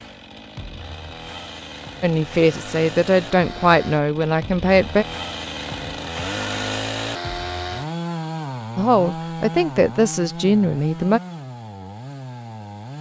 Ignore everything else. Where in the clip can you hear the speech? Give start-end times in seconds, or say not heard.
2.0-5.0, 8.8-11.2.